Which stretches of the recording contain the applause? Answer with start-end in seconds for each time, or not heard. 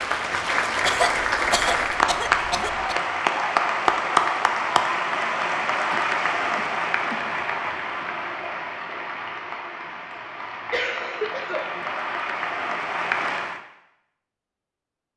0.0-13.6.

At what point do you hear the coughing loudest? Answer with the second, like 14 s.
1 s.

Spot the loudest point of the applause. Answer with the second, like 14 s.
4 s.